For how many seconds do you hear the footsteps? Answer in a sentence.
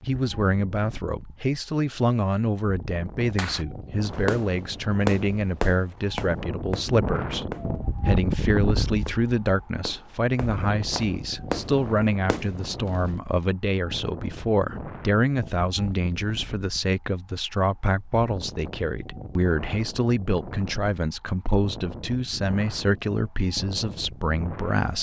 The footsteps can't be heard in this clip.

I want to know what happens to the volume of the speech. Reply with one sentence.
The volume of the speech stays about the same.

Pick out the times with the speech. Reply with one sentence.
The speech can be heard from 0.1 to 24.9 s.